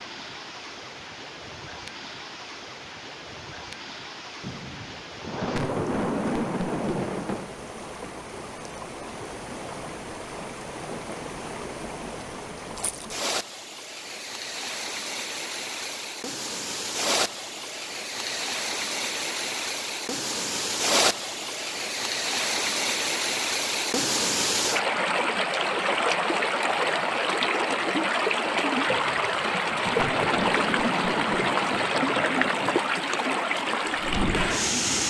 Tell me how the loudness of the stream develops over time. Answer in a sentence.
The loudness of the stream goes up.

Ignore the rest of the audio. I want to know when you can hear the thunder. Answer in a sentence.
The thunder can be heard from 4.4 to 7.5 s and from 28.9 to 32.9 s.